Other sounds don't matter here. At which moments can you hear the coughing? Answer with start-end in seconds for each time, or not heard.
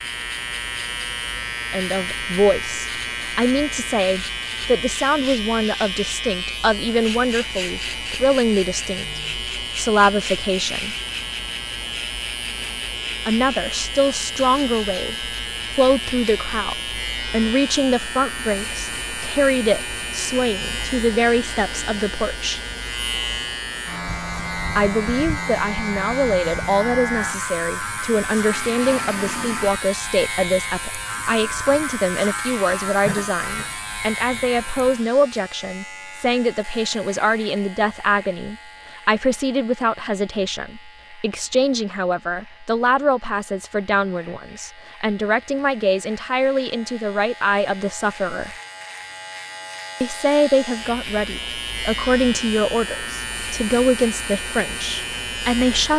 33.0-33.8.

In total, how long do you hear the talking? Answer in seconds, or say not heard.
48 s.